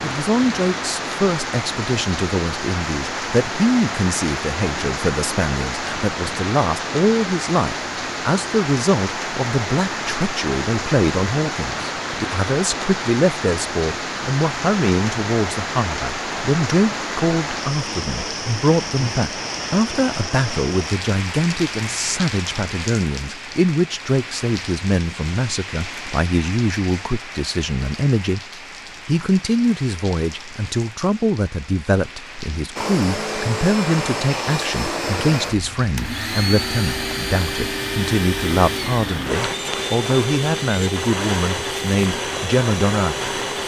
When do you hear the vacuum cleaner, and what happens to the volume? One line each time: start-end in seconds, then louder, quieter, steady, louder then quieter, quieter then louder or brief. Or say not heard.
32.8-43.6 steady.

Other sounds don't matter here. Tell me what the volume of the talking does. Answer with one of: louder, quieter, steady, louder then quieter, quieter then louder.
steady.